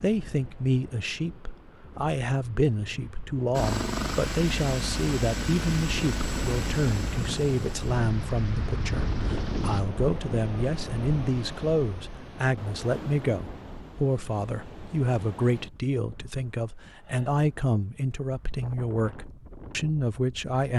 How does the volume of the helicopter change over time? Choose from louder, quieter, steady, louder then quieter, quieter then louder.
quieter.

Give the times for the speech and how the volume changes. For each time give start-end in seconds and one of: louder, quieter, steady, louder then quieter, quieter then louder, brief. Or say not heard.
0.0-20.7 steady.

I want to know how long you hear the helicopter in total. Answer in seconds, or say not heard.
6 s.